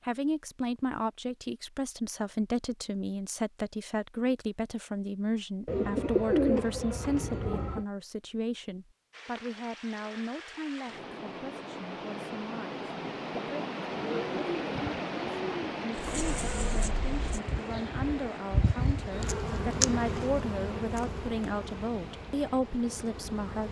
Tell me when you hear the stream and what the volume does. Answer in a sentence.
The stream can be heard from 9.1 to 23.6 s, getting louder then quieter.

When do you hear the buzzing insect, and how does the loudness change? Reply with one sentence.
The buzzing insect can be heard from 15.9 to 23.6 s, getting louder then quieter.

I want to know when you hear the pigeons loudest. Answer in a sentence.
The volume of the pigeons peaks at 6 seconds.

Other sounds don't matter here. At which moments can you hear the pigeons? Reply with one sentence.
You can hear the pigeons from 5.7 to 7.8 s and from 13.9 to 15.6 s.